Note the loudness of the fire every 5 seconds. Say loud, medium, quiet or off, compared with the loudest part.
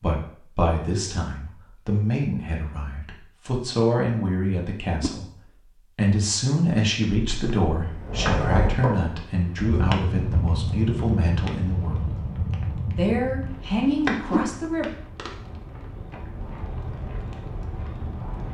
off, loud, loud, medium.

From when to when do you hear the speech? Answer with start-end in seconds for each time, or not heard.
0.0-5.2, 6.0-12.1, 12.8-14.9.